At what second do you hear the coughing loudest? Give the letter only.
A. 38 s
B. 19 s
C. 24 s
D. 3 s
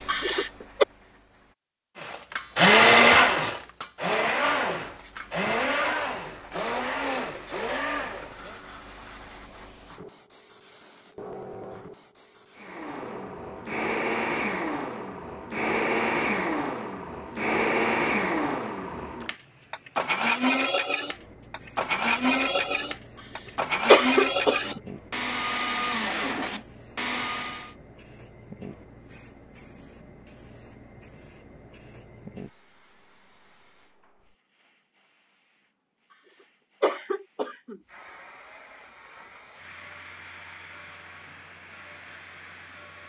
C.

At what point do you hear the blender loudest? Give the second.
3 s.